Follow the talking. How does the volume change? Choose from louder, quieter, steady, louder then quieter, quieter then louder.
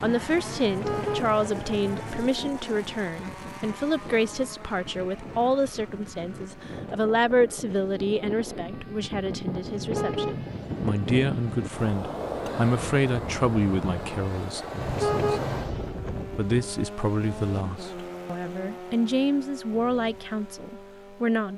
steady.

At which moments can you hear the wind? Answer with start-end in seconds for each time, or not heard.
0.0-16.8.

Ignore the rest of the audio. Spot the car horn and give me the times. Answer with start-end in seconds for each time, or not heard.
0.6-2.2, 9.7-11.7, 14.8-16.0.